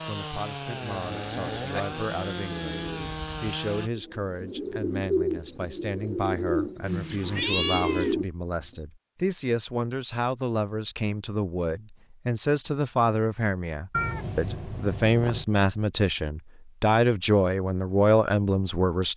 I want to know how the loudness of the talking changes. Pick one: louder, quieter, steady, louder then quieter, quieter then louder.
louder.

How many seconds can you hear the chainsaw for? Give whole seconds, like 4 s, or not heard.
4 s.